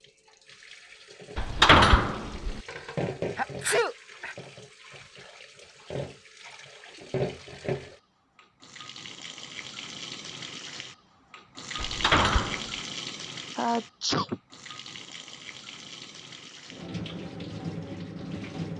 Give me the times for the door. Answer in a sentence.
You can hear the door from 1.4 to 2.6 s and from 11.8 to 12.7 s.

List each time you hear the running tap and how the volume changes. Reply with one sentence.
The running tap can be heard from 0.0 to 18.7 s, at a steady volume.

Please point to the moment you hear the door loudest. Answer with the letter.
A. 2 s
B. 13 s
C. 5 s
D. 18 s
A.